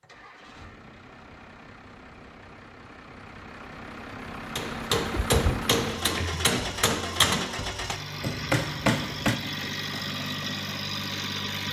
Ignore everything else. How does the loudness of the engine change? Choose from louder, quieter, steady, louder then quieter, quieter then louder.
louder.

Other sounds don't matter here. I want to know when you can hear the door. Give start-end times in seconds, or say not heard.
5.0-6.5.